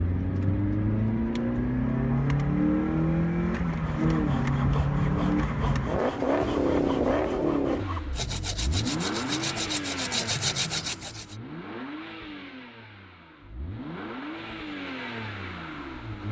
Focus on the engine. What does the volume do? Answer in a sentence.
The loudness of the engine goes down.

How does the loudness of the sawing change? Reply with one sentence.
The loudness of the sawing goes up.